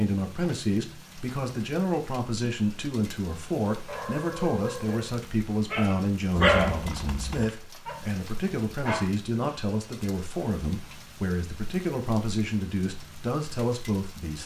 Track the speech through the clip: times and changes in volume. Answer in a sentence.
You can hear the speech from 0.0 to 14.4 s, at a steady volume.